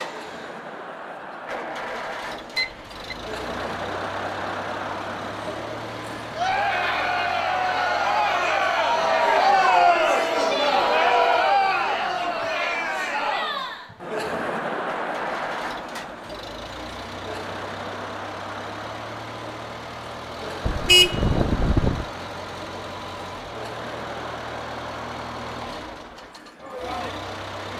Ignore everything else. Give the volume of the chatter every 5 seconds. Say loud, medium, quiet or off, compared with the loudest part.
quiet, loud, loud, quiet, quiet, quiet.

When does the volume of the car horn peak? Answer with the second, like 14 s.
21 s.